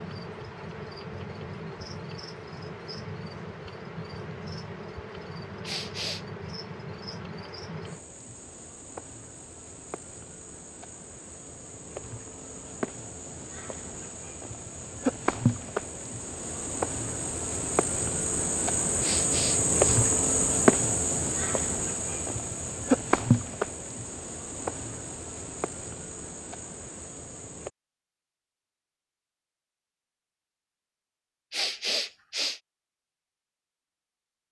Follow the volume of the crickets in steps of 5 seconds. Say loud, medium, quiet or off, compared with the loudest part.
quiet, quiet, quiet, loud, loud, quiet, off.